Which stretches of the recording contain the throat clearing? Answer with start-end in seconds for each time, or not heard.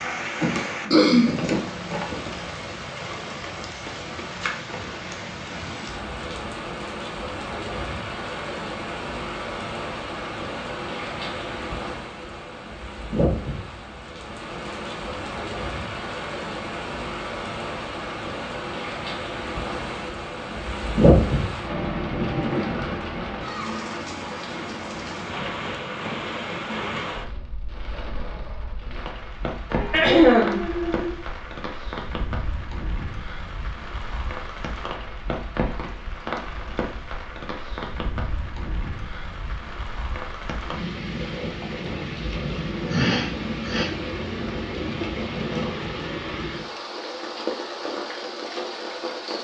0.4-2.2, 29.7-31.1, 42.9-43.9.